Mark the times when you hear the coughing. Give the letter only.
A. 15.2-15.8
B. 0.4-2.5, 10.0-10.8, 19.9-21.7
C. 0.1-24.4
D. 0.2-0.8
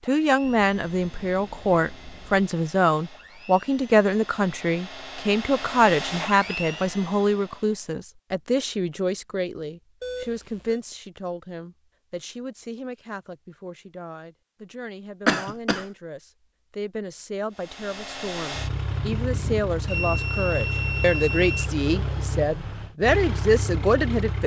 A.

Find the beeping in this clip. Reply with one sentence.
The beeping can be heard from 0.4 to 2.5 s, from 10.0 to 10.8 s and from 19.9 to 21.7 s.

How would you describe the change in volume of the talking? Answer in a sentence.
The loudness of the talking goes down, then up.